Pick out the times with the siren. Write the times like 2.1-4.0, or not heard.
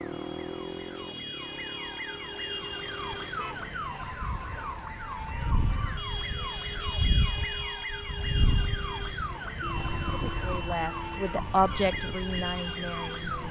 0.0-13.4.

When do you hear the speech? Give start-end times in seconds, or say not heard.
10.3-13.3.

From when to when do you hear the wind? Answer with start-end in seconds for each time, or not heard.
4.2-13.4.